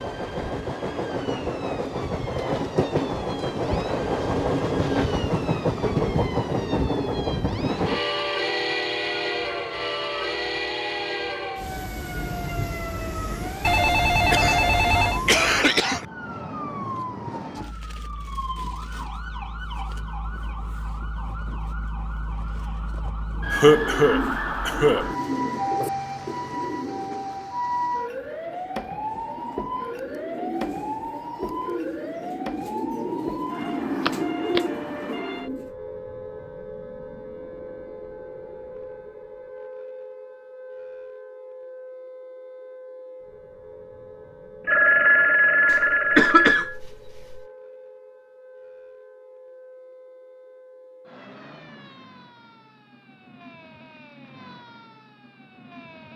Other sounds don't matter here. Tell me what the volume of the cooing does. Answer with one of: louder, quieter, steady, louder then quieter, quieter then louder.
quieter then louder.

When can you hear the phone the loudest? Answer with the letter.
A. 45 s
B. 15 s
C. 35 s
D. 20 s
A.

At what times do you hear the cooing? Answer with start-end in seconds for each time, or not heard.
23.3-35.7.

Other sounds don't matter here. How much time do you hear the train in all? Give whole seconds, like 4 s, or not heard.
16 s.